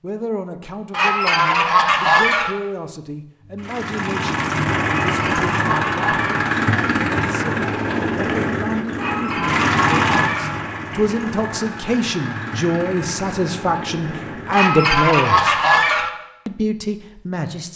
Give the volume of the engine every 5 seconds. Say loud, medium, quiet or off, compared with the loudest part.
loud, loud, medium, off.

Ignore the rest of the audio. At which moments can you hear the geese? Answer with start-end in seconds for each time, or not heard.
0.9-2.5, 4.8-6.5, 8.9-10.6, 14.5-16.1.